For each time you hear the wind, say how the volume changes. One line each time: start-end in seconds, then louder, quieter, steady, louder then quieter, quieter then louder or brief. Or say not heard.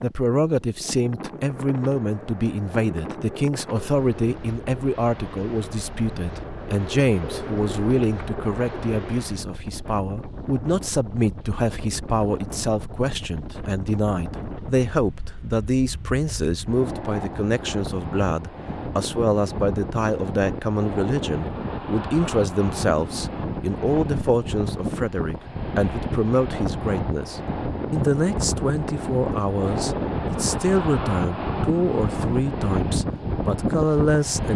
0.0-34.5 louder.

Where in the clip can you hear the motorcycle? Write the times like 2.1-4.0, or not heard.
not heard.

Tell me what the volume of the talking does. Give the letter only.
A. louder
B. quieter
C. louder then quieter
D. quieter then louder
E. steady
E.